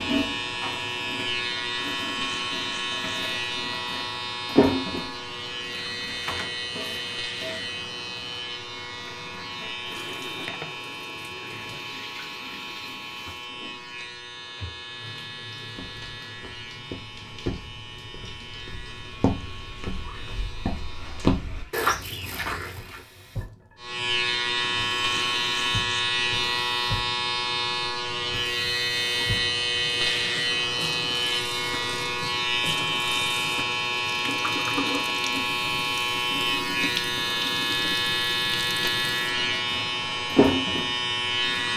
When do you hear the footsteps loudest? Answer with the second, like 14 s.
21 s.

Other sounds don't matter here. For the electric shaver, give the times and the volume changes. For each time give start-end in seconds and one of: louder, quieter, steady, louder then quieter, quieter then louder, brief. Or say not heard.
0.0-21.4 quieter
23.8-41.7 steady.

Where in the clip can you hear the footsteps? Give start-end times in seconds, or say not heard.
15.7-23.0.